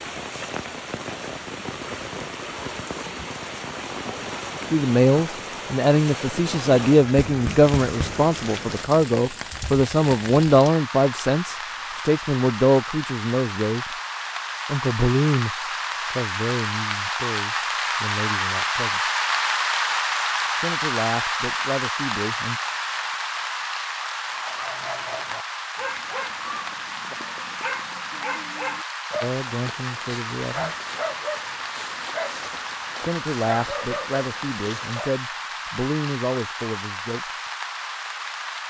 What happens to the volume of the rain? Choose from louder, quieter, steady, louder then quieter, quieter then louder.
louder then quieter.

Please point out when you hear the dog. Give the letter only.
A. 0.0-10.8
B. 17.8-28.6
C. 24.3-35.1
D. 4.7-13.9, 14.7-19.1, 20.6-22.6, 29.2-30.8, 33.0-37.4
C.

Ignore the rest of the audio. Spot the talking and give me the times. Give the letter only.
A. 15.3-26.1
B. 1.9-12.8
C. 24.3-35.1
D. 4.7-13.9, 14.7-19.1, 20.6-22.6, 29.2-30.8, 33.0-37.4
D.